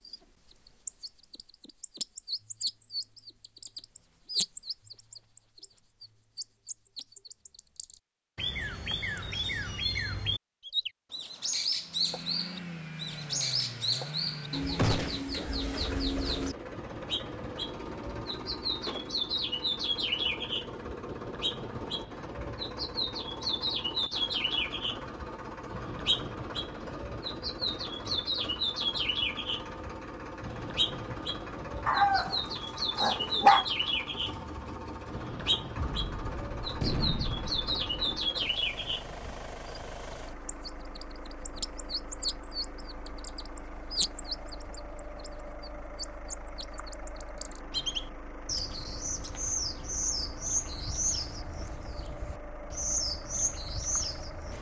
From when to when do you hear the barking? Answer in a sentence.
You can hear the barking from 31.9 to 33.6 s.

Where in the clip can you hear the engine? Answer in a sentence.
The engine can be heard from 11.8 to 54.5 s.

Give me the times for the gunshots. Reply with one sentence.
You can hear the gunshots from 14.8 to 15.3 s and from 35.8 to 38.2 s.